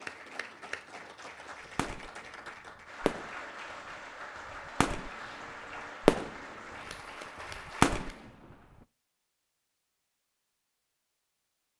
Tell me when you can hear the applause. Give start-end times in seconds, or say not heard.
0.0-8.3.